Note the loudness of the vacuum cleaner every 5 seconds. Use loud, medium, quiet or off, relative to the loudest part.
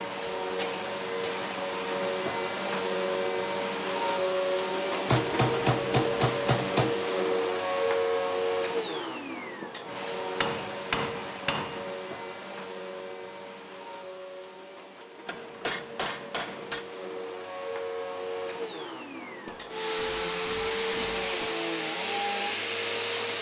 loud, loud, medium, medium, loud.